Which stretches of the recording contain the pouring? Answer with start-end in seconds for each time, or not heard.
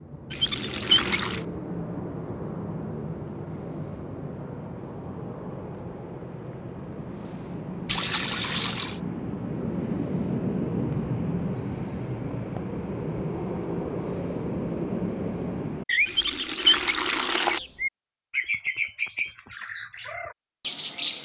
0.3-1.4, 7.8-9.0, 16.1-17.6.